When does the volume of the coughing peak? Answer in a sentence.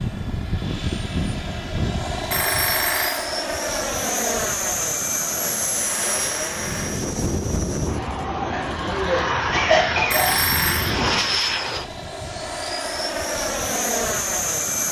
The volume of the coughing peaks at 10 seconds.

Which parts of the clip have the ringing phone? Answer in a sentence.
The ringing phone can be heard from 2.3 to 3.2 s, from 5.8 to 7.0 s and from 10.1 to 10.9 s.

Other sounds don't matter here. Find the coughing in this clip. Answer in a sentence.
You can hear the coughing from 8.4 to 10.4 s.